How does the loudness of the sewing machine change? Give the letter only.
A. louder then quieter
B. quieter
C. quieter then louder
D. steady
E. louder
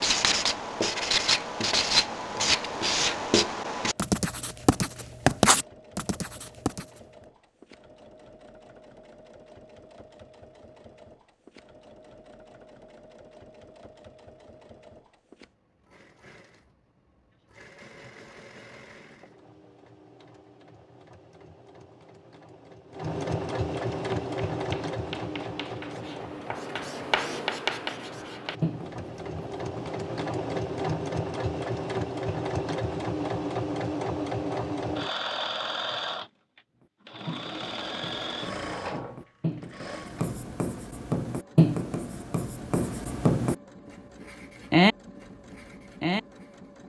A.